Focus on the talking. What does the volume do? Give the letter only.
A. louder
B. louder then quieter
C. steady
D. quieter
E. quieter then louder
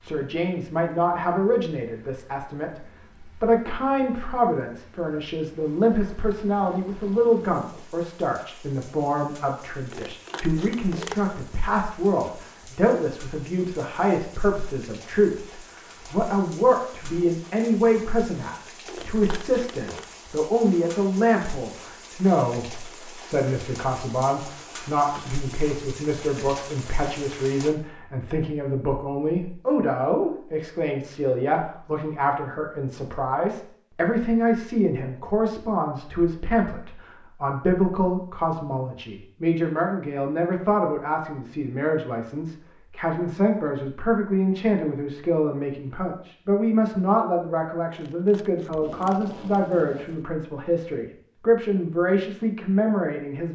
C.